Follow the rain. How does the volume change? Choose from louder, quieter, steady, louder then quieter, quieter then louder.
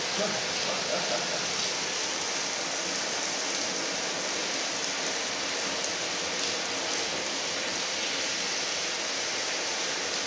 steady.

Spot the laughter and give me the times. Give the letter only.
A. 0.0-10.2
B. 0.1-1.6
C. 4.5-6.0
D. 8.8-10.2
B.